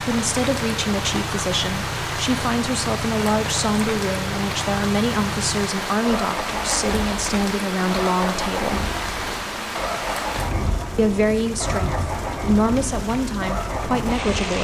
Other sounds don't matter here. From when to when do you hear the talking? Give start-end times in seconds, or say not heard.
0.0-8.8, 10.9-14.5.